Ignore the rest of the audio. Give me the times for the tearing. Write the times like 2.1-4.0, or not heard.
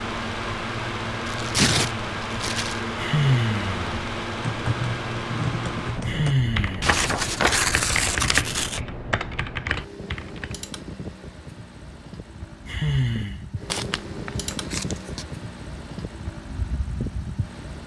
1.2-2.8, 6.8-8.8, 13.7-15.2.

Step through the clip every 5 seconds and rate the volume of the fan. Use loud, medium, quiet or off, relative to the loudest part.
loud, medium, medium, medium.